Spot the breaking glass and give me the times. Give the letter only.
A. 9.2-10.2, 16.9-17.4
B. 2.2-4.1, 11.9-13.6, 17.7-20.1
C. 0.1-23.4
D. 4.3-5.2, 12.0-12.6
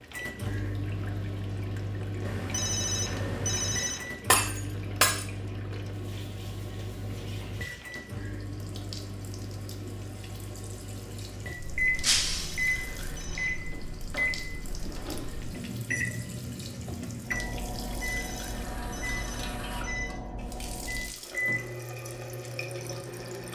D.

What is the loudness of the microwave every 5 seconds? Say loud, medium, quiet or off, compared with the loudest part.
loud, medium, loud, loud, loud.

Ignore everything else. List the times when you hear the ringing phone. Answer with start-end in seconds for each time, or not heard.
2.2-4.1, 11.9-13.6, 17.7-20.1.